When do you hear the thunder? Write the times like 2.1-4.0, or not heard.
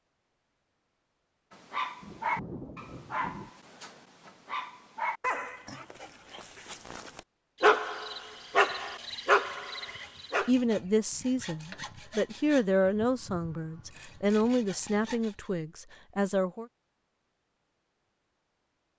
2.0-3.5.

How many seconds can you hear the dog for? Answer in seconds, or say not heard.
9 s.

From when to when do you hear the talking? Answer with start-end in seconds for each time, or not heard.
10.4-16.6.